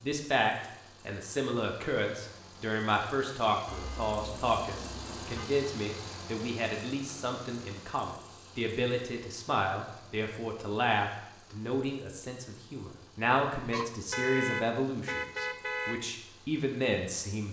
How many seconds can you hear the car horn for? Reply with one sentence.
The car horn can be heard for 4 seconds in total.